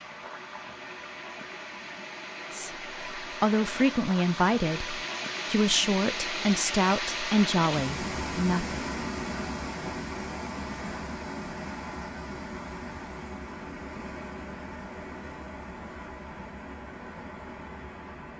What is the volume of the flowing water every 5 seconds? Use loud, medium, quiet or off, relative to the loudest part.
medium, loud, medium, medium.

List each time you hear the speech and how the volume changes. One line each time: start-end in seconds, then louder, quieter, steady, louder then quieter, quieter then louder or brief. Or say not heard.
2.5-8.8 steady.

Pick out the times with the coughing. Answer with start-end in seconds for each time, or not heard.
not heard.